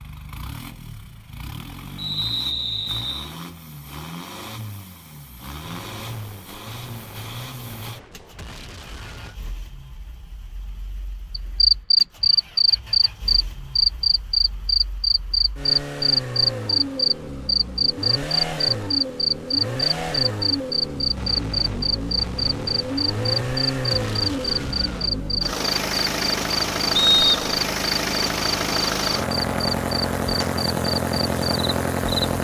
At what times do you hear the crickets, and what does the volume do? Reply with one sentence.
You can hear the crickets from 11.3 to 32.3 s, getting quieter.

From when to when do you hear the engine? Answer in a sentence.
The engine can be heard from 0.0 to 32.3 s.